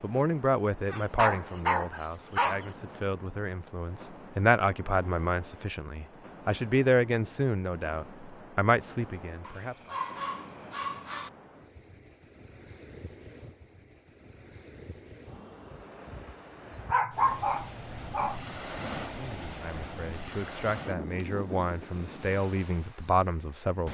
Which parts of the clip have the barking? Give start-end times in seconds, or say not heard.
0.9-2.7, 9.4-11.3, 16.9-18.6.